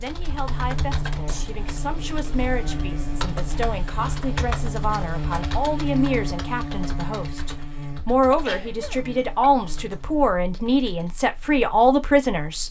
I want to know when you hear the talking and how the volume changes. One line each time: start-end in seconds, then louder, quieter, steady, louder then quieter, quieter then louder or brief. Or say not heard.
0.0-12.6 louder.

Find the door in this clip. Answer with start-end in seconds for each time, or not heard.
not heard.